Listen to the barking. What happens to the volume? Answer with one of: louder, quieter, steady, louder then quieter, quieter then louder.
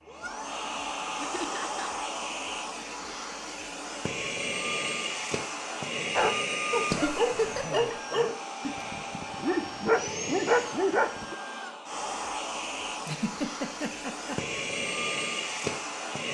quieter then louder.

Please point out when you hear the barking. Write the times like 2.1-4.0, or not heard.
6.2-11.3.